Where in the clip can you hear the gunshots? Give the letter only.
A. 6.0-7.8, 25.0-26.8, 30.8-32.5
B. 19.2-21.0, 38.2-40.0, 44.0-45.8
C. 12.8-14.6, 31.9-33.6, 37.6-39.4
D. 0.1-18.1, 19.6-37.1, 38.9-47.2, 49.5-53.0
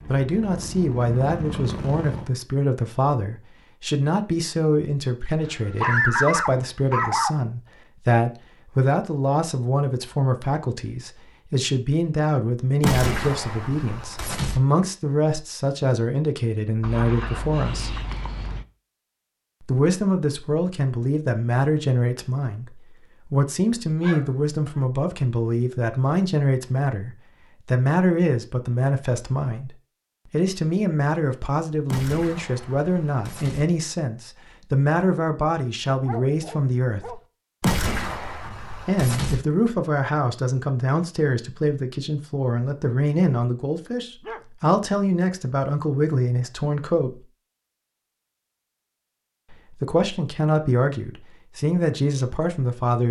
C.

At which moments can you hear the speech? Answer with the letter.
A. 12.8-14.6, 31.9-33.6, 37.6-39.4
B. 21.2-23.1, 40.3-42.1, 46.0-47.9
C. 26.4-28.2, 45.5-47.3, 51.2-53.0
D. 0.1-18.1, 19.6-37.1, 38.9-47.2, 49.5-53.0
D.